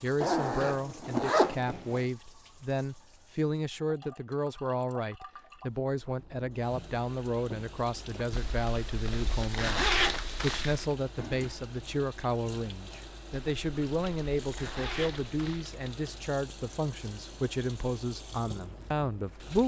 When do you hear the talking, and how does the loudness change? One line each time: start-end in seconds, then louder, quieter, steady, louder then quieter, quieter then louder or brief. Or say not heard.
0.0-19.6 steady.